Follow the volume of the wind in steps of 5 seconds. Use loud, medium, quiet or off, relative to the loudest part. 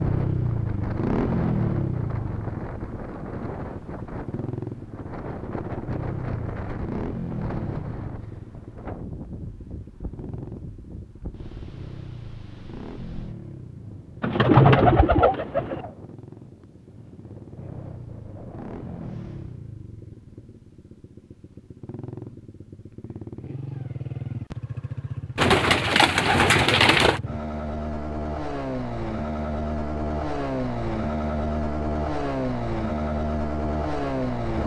loud, loud, medium, medium, off, off, off.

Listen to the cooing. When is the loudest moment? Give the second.
15 s.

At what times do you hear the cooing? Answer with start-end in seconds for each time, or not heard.
14.2-15.8, 25.4-27.2.